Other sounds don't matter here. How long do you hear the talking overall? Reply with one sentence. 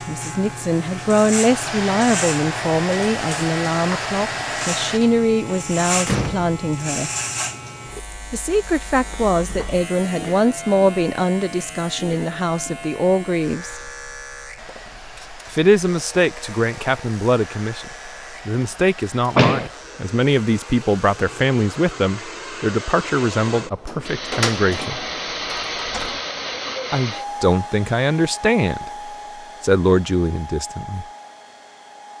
The talking can be heard for 26 seconds in total.